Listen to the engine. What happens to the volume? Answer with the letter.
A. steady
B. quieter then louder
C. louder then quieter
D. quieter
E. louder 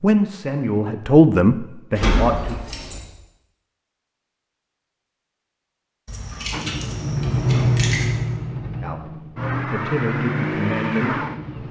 B.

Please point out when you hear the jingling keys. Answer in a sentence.
The jingling keys can be heard from 1.9 to 3.0 s and from 6.0 to 8.1 s.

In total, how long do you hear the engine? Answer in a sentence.
You can hear the engine for 5 seconds altogether.